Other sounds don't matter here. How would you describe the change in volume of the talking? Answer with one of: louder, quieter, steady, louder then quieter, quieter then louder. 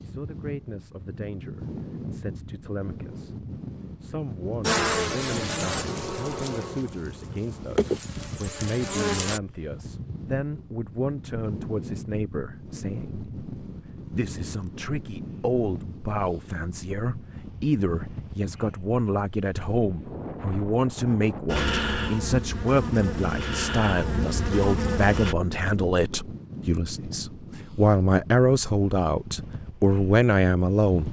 louder.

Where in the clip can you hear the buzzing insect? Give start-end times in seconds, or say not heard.
4.6-9.4, 21.4-25.4.